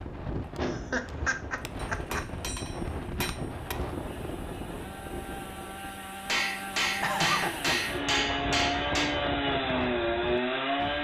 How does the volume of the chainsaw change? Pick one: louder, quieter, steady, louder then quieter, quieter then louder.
louder.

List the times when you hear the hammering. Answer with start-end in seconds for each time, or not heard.
1.9-3.8, 6.2-9.2.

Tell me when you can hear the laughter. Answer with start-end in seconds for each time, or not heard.
0.6-2.2, 7.0-7.8.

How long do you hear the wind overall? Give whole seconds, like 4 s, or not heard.
11 s.